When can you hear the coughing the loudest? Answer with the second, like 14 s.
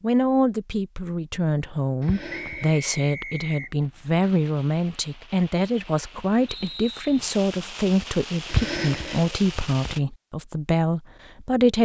9 s.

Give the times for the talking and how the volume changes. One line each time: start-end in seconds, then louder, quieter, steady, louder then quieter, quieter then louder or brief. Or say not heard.
0.0-11.8 steady.